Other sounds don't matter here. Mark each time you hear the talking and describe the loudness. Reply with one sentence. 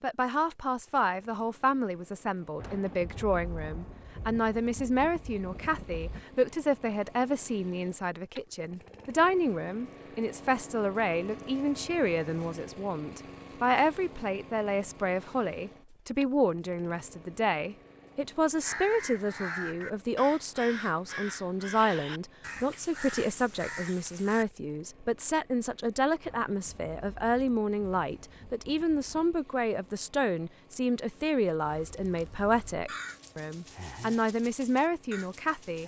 The talking can be heard from 0.0 to 35.8 s, at a steady volume.